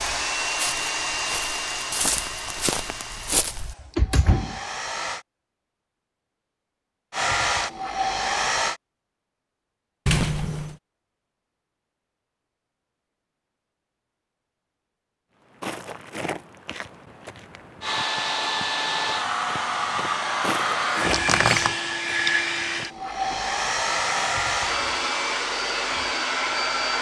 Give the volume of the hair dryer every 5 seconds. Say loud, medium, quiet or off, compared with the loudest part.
medium, loud, off, loud, loud, loud.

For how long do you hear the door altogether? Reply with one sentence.
You can hear the door for 2 seconds altogether.